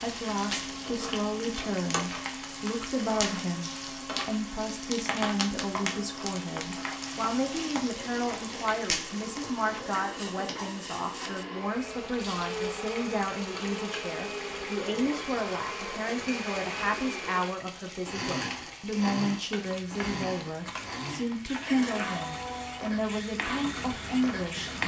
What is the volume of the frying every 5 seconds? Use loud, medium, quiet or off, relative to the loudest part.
loud, loud, medium, medium, loud.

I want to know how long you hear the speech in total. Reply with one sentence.
The speech can be heard for 25 seconds in total.